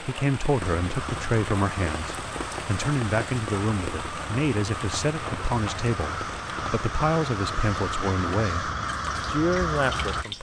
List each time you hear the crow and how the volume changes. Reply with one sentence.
You can hear the crow from 0.6 to 10.2 s, getting louder.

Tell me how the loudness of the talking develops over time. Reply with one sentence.
The volume of the talking stays about the same.